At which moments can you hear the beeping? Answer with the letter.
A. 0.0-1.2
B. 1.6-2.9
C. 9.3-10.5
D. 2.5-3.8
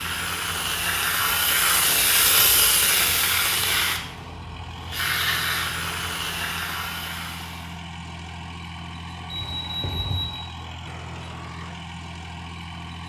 C.